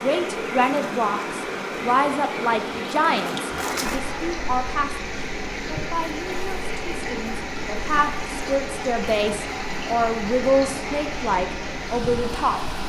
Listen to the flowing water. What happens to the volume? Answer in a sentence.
The volume of the flowing water stays about the same.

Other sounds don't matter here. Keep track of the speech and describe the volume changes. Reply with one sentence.
The loudness of the speech goes down, then up.